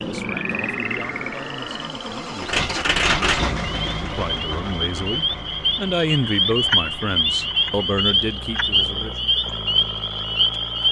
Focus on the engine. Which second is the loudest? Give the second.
3 s.